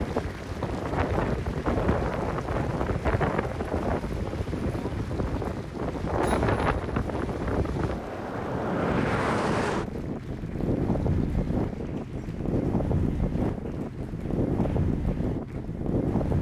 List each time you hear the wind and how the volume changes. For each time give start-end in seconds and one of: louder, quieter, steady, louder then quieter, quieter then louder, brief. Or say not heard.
0.0-16.3 steady.